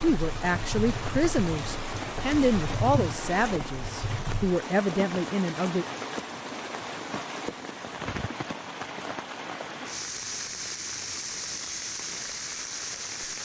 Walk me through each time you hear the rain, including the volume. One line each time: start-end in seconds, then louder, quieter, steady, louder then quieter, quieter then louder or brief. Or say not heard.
0.0-13.3 steady.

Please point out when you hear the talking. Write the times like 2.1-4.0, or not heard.
0.0-5.8.